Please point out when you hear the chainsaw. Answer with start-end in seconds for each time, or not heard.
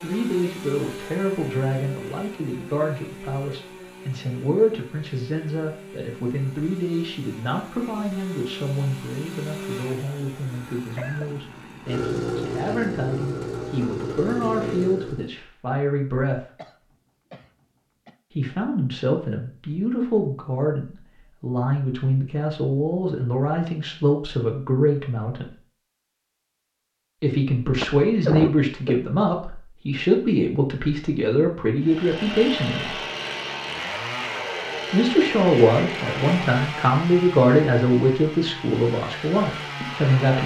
0.0-15.3, 31.8-40.4.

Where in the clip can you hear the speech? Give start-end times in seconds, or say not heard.
0.0-16.4, 18.3-25.6, 27.2-33.0, 34.9-40.4.